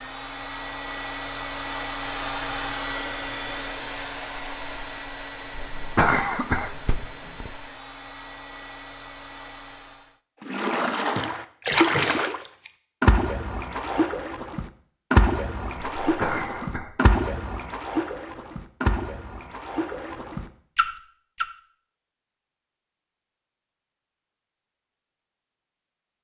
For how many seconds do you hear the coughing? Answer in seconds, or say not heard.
3 s.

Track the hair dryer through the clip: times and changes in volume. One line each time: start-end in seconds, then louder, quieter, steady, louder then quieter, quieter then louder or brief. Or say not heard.
0.0-10.2 quieter.